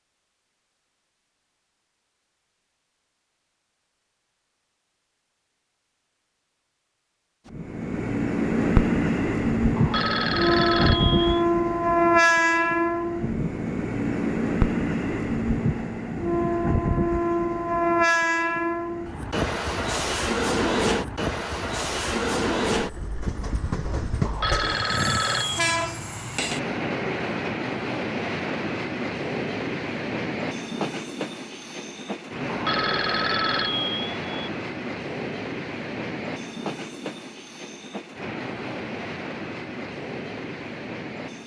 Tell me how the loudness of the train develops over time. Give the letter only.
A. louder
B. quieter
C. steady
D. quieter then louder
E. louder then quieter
B.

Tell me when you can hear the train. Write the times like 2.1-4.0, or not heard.
7.5-41.4.